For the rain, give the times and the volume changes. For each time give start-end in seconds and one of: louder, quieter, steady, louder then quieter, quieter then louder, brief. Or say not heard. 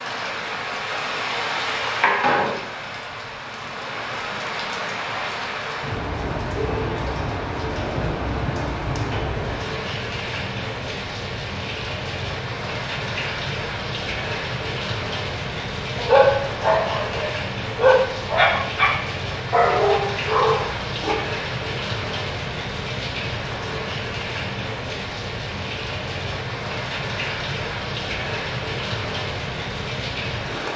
0.0-30.7 steady.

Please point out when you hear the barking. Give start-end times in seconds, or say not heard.
15.9-21.1.